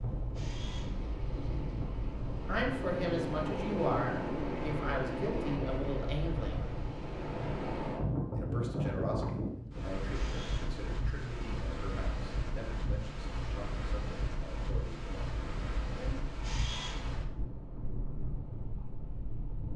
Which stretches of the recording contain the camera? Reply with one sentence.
You can hear the camera from 0.3 to 0.9 s, from 10.1 to 10.8 s and from 16.4 to 17.1 s.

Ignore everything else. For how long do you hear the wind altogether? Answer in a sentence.
The wind can be heard for 20 seconds in total.